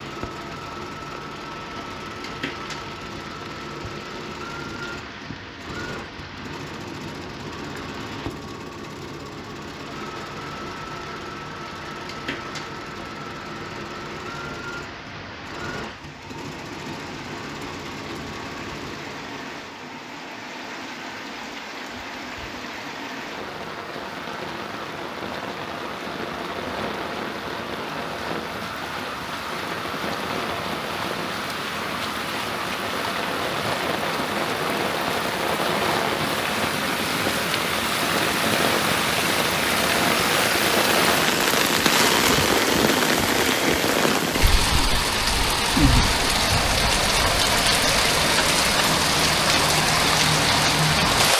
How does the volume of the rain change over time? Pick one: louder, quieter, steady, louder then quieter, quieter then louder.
louder.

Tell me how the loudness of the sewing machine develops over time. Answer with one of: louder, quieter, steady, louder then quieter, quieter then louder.
steady.